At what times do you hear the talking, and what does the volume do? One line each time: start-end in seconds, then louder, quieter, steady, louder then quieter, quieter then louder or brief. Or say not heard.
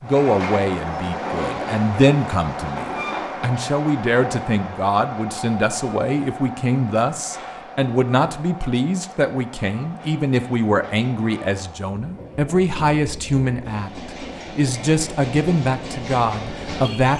0.0-17.1 steady.